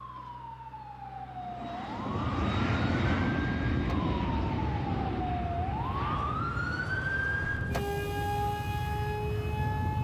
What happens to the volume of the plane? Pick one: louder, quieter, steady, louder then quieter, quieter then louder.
quieter.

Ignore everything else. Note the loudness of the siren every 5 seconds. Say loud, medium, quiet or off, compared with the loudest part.
medium, loud.